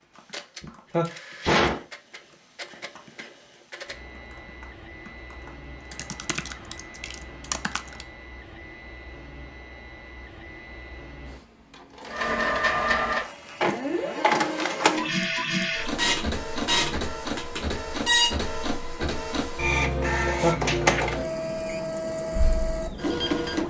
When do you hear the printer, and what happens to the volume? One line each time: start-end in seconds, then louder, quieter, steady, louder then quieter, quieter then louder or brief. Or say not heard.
0.0-23.6 louder.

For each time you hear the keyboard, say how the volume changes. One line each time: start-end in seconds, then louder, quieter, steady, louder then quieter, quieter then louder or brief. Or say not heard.
0.0-8.1 louder.